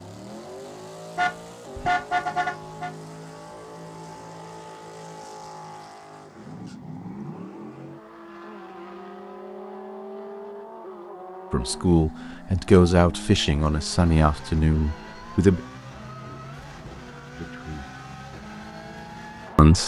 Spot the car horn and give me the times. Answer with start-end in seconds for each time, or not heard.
1.1-2.9.